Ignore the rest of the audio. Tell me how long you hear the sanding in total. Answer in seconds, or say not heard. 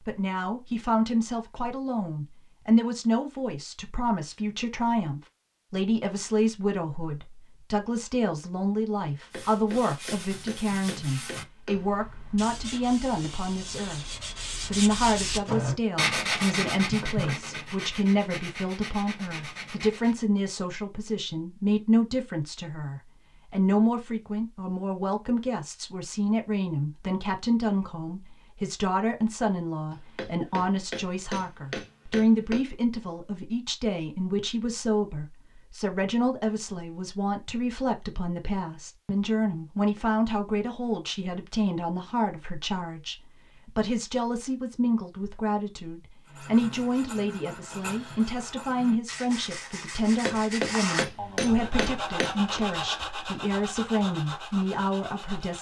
20 s.